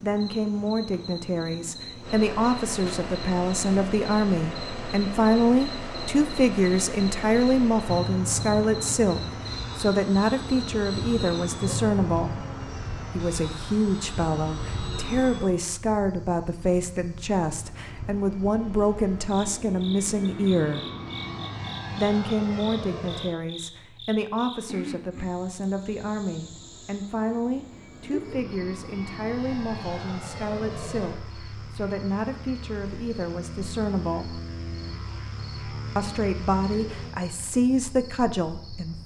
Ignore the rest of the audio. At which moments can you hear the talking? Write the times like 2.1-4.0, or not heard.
0.0-12.4, 13.1-20.8, 21.9-34.4, 36.0-39.0.